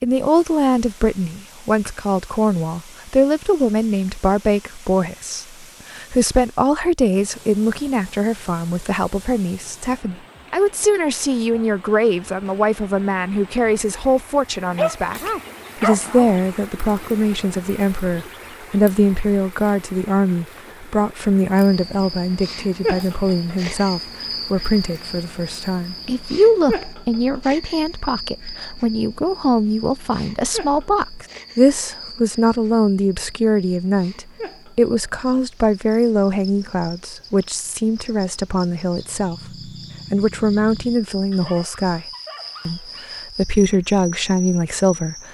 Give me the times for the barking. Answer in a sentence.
The barking can be heard from 14.8 to 16.4 s and from 41.3 to 43.2 s.